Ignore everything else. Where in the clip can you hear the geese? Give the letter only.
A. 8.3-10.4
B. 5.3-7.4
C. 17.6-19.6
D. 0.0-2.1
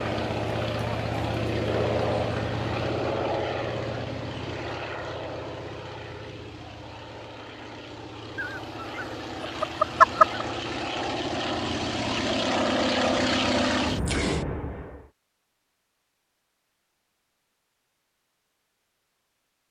A.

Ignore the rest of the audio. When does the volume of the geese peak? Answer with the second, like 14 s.
10 s.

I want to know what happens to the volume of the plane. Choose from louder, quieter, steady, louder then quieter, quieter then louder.
quieter then louder.